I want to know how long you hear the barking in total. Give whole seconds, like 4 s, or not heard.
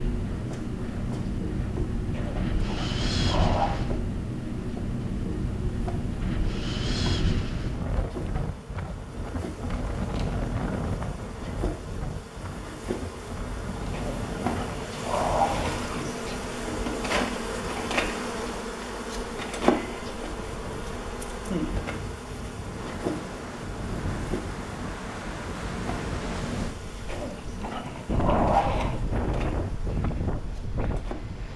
6 s.